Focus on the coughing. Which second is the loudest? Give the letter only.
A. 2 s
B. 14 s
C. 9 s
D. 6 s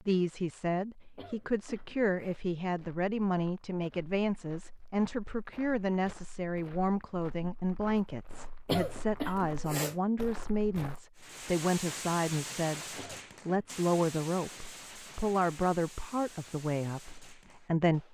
C.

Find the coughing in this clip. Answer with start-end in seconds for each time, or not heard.
1.1-2.4, 8.7-9.9, 12.9-13.8.